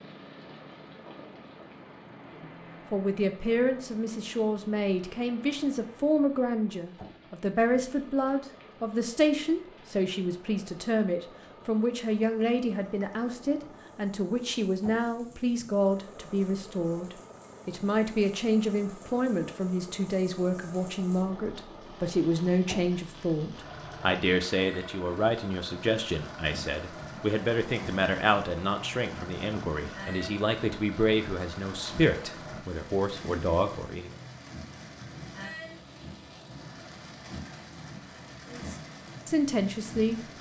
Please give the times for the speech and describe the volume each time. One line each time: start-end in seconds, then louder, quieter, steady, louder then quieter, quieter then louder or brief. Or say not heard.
2.9-34.1 steady
38.5-40.2 brief.